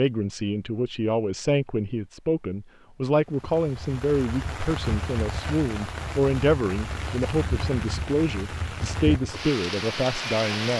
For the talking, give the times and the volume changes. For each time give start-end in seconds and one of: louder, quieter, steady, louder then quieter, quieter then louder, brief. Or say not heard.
0.0-10.7 steady.